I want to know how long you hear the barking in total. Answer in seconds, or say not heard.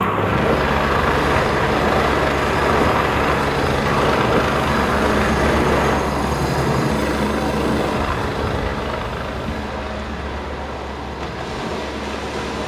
not heard.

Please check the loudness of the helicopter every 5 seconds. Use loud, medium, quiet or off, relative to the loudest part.
loud, loud, medium.